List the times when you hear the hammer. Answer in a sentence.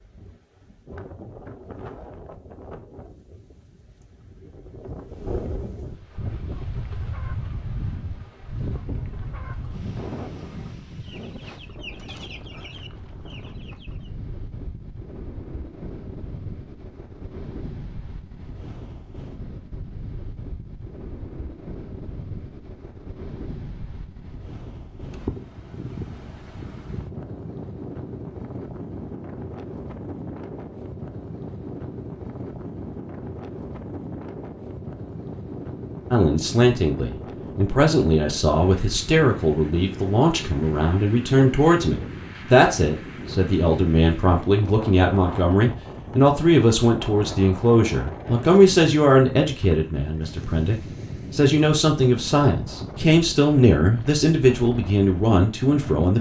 You can't hear the hammer here.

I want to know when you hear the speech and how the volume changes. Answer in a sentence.
The speech can be heard from 36.1 to 56.1 s, at a steady volume.